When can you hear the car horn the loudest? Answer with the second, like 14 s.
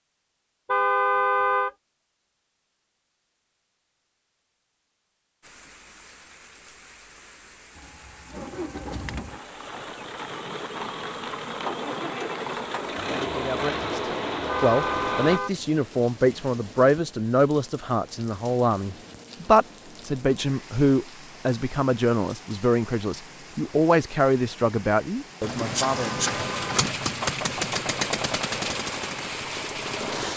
1 s.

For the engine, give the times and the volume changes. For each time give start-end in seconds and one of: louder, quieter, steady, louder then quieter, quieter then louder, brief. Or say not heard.
7.8-15.4 louder
25.4-30.3 quieter.